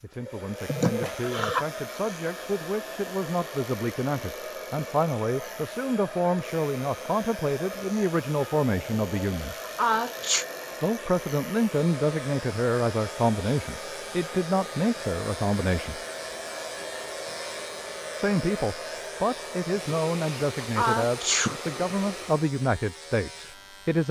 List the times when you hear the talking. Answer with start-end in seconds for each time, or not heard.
0.0-9.6, 10.8-16.0, 18.1-24.0.